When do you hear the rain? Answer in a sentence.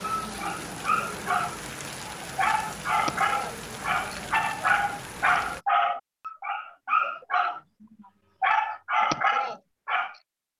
The rain can be heard from 0.0 to 5.7 s.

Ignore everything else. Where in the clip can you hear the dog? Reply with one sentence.
You can hear the dog from 0.0 to 1.6 s, from 2.4 to 7.6 s and from 8.4 to 10.2 s.